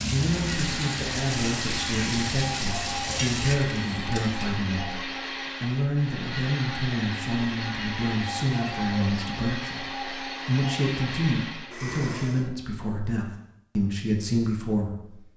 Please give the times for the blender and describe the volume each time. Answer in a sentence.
You can hear the blender from 0.1 to 12.5 s, at a steady volume.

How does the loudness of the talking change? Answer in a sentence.
The volume of the talking stays about the same.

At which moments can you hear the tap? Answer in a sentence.
The tap can be heard from 0.0 to 3.5 s.